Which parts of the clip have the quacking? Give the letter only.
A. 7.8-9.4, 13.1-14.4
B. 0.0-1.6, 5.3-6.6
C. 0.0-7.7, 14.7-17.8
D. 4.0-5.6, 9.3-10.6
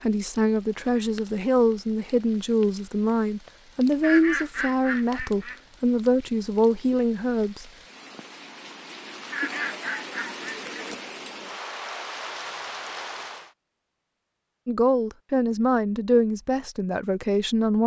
D.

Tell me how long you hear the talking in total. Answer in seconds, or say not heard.
11 s.